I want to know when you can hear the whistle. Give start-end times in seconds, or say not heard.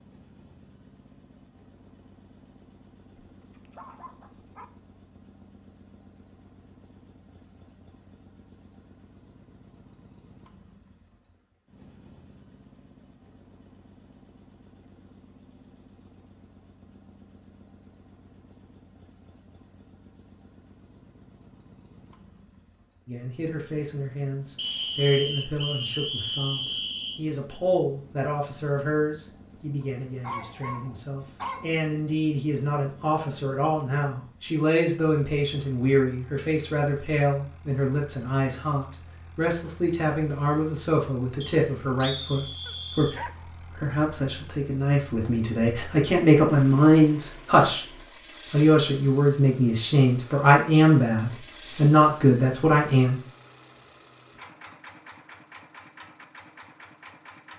24.6-27.2, 41.4-43.2.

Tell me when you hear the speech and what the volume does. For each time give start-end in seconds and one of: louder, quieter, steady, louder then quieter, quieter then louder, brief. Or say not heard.
23.1-53.2 louder.